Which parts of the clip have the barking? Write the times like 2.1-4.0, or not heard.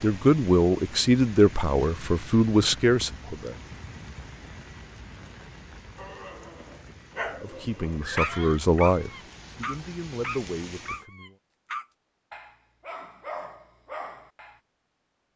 6.0-14.6.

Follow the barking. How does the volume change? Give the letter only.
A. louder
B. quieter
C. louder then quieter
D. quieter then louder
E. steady
C.